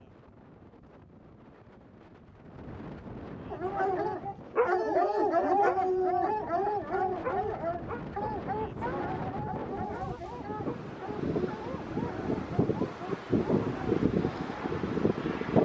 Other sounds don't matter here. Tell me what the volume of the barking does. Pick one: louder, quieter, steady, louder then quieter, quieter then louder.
quieter.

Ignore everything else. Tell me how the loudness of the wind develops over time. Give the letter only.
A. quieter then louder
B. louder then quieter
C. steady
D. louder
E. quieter
D.